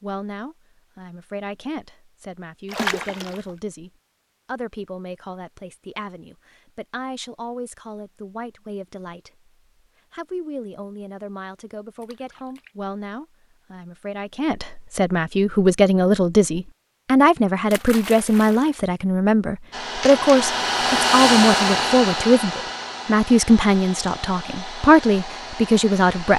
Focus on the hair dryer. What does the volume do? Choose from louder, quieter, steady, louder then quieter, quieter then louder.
quieter.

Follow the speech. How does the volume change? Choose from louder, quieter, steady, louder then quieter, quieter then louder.
louder.